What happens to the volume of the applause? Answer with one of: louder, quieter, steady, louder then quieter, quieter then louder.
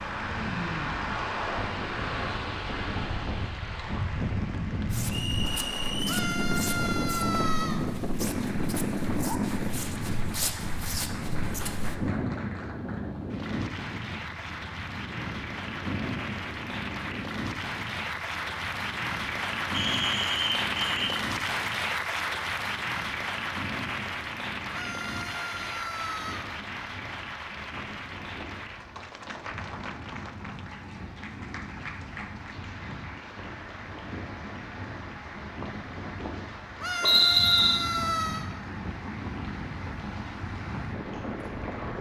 louder then quieter.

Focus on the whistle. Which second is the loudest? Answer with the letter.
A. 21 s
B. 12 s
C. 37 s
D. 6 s
C.